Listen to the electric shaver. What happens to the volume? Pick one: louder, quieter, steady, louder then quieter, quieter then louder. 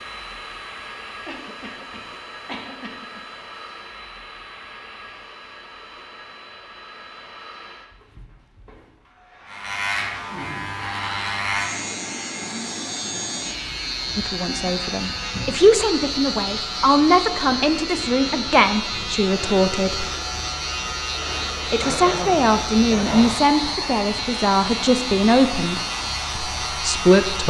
steady.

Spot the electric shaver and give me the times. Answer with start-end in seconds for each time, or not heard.
9.4-27.4.